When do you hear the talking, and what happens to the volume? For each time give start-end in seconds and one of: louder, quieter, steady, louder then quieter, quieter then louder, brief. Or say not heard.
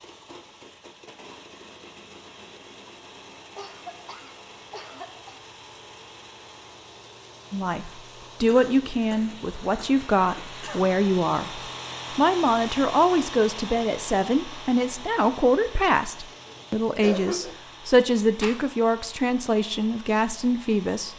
7.5-21.1 steady.